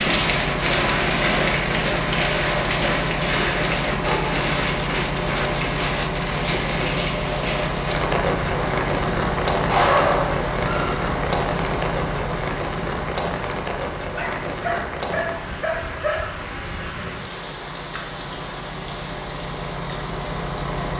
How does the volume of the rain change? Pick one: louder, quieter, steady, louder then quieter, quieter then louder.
quieter.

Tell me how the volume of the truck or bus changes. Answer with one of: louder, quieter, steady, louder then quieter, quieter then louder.
quieter.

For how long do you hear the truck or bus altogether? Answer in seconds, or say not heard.
21 s.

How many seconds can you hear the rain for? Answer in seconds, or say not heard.
21 s.